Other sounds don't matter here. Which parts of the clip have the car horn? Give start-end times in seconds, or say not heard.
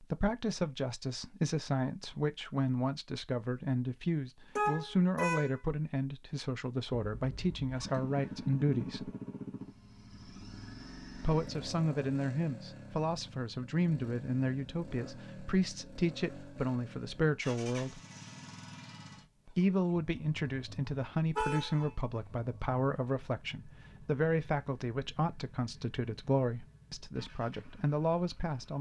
4.5-5.6, 21.4-21.9.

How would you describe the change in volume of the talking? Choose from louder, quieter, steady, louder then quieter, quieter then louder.
steady.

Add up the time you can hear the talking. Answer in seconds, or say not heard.
25 s.